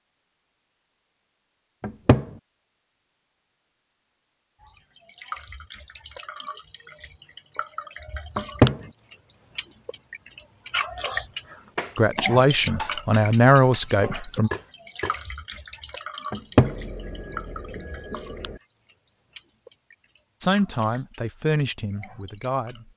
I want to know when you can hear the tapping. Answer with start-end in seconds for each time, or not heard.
11.8-15.2.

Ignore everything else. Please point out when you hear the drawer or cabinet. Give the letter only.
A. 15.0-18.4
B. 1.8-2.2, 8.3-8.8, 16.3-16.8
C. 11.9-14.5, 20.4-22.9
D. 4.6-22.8
B.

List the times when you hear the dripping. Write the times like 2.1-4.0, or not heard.
4.6-22.8.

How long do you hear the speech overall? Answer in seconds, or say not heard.
5 s.